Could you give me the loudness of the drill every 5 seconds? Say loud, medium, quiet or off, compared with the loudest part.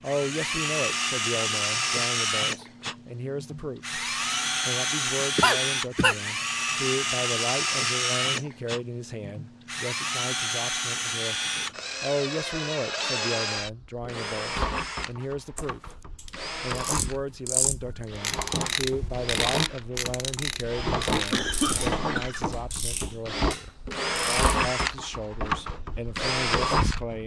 loud, loud, loud, medium, loud, loud.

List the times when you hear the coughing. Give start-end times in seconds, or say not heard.
5.2-6.2, 21.3-22.5.